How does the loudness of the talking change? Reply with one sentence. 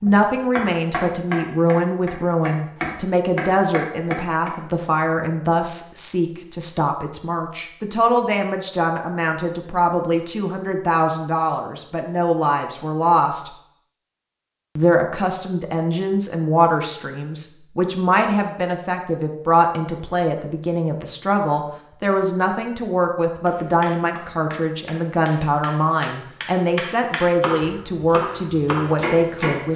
The loudness of the talking stays about the same.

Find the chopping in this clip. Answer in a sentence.
The chopping can be heard from 0.0 to 4.5 s and from 23.4 to 29.7 s.